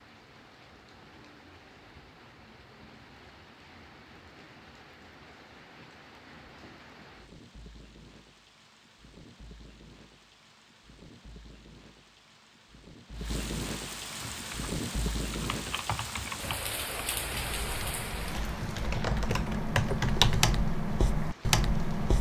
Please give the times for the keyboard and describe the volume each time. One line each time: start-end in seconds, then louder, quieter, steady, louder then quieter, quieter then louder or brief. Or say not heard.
14.2-22.1 louder.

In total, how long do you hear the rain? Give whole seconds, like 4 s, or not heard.
22 s.